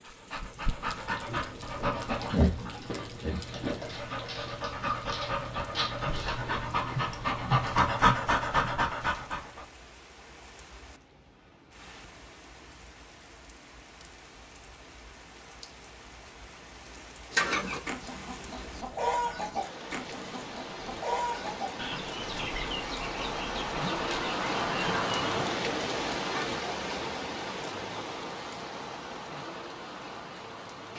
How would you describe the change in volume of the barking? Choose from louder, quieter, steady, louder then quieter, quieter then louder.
louder.